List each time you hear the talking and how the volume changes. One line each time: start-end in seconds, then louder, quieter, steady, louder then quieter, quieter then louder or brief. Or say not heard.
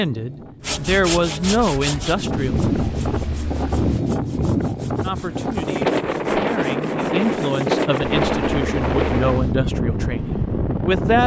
0.0-2.5 brief
5.0-11.2 louder then quieter.